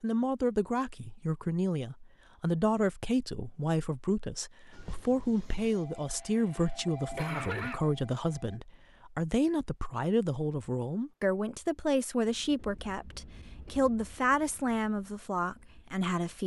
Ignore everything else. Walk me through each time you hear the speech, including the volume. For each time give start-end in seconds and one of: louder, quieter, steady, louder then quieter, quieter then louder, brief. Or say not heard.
0.0-16.4 steady.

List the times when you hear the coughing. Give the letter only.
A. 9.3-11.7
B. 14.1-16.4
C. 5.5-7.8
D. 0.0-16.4
C.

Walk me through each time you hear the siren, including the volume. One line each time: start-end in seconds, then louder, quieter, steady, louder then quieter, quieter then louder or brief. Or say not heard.
not heard.